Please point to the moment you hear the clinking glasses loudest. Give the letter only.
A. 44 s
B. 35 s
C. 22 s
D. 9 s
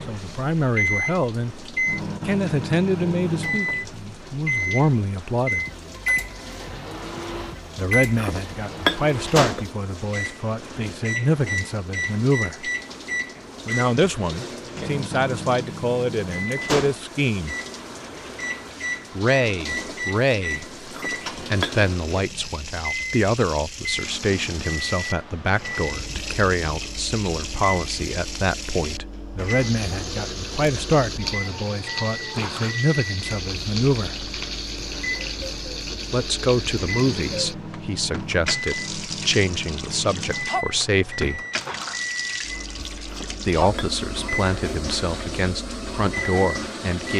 D.